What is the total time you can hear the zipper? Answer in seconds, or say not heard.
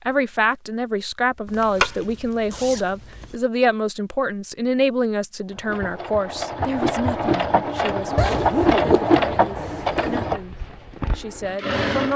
4 s.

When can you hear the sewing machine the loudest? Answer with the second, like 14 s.
9 s.